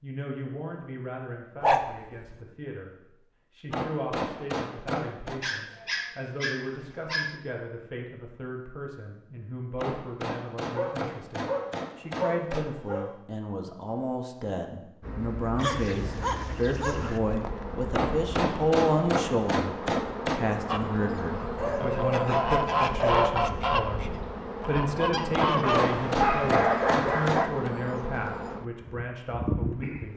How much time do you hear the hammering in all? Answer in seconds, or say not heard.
10 s.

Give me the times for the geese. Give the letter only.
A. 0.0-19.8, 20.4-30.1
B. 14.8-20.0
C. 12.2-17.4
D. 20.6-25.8
D.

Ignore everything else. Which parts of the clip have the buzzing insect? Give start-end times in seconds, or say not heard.
15.0-30.1.